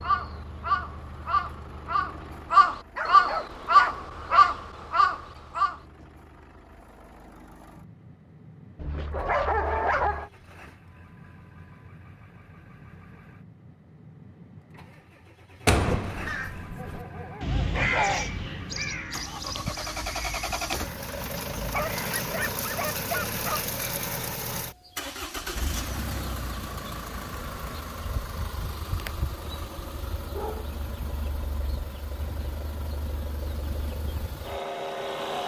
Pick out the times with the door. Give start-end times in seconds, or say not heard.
15.7-16.8.